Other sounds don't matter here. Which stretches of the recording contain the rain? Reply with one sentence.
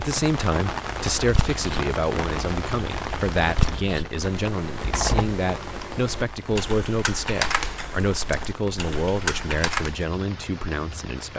You can hear the rain from 0.0 to 11.3 s.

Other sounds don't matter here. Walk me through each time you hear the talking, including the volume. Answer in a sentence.
You can hear the talking from 0.0 to 11.3 s, at a steady volume.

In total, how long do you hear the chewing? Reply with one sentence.
You can't hear the chewing here.